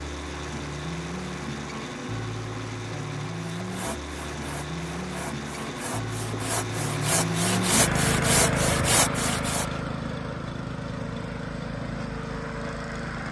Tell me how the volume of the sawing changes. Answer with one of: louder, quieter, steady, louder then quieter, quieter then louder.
louder.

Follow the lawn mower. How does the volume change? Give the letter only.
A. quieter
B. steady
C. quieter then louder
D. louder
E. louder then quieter
E.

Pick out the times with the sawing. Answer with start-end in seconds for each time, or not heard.
3.6-9.7.